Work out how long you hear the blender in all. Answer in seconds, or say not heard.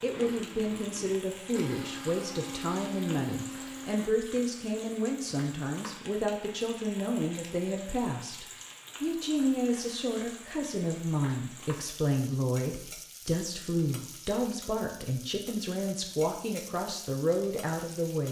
4 s.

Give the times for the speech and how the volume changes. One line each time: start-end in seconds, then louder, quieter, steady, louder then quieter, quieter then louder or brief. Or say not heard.
0.0-18.2 steady.